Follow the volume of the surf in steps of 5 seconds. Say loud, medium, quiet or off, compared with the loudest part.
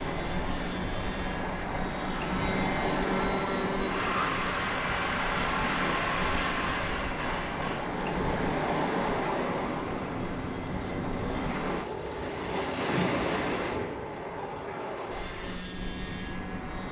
loud, loud, loud, medium.